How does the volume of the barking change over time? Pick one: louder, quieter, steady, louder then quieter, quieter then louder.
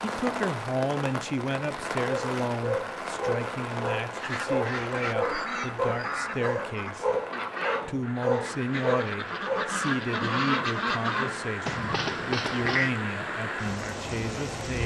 steady.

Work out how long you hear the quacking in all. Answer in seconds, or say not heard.
9 s.